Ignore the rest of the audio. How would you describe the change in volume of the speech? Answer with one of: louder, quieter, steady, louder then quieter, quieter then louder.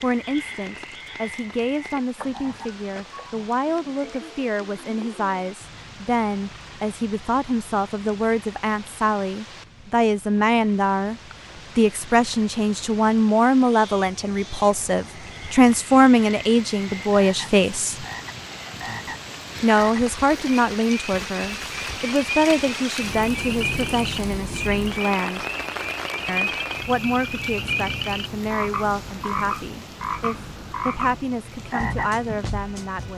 louder then quieter.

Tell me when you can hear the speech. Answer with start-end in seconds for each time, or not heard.
0.0-11.2, 11.8-18.1, 19.6-25.4, 26.2-33.1.